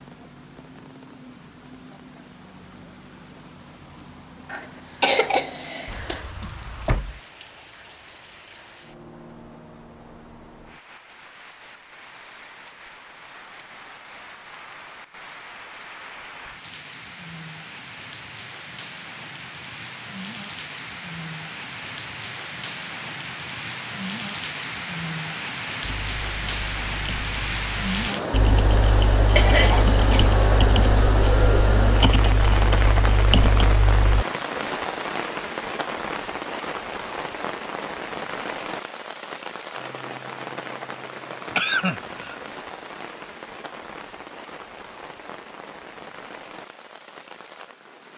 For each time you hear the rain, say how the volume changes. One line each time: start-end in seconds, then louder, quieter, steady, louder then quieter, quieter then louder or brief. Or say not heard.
0.0-48.1 louder then quieter.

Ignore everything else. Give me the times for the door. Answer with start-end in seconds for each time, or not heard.
5.8-7.2.